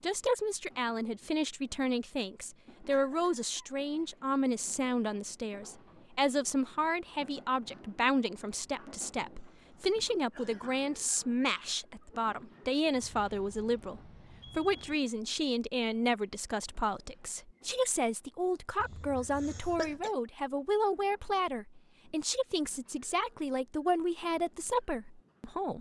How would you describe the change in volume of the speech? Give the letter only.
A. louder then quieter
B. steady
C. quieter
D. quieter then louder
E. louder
B.